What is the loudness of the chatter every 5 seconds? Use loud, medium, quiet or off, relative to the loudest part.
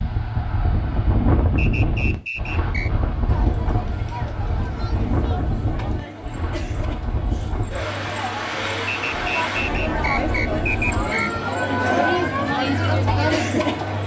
quiet, medium, loud.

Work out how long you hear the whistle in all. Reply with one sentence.
The whistle can be heard for 4 seconds in total.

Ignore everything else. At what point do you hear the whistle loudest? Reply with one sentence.
The loudest moment of the whistle is at 11 seconds.